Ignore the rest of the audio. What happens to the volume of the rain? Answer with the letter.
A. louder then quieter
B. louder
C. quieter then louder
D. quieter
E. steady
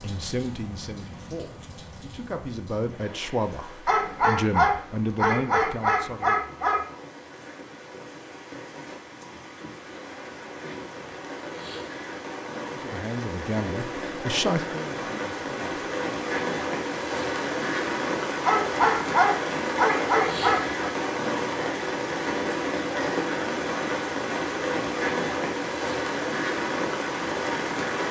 B.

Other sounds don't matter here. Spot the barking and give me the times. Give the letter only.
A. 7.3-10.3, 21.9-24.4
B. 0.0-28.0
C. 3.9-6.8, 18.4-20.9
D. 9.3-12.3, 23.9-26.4
C.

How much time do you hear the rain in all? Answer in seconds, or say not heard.
28 s.